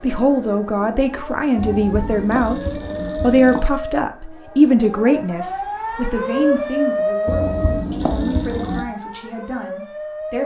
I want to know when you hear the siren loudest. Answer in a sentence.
The loudest moment of the siren is at 7 seconds.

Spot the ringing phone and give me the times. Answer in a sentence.
The ringing phone can be heard from 1.6 to 3.6 s and from 7.2 to 8.8 s.